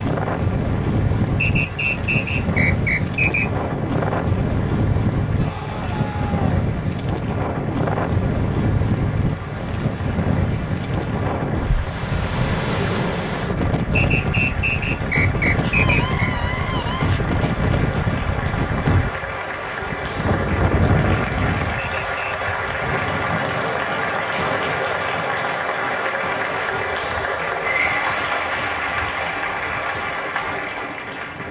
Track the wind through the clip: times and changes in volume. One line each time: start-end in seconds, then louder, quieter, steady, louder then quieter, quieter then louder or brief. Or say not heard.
0.0-31.4 quieter.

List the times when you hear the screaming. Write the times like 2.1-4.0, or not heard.
5.3-6.7, 15.6-17.2, 27.9-28.4.